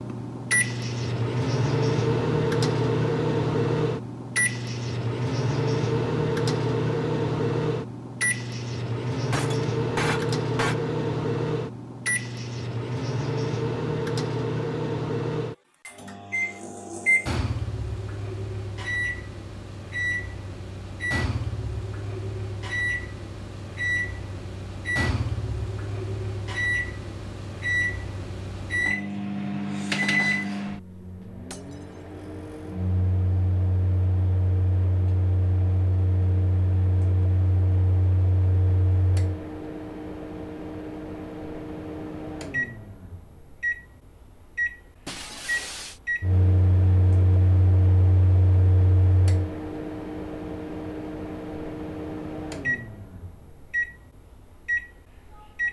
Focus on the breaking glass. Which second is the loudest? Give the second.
10 s.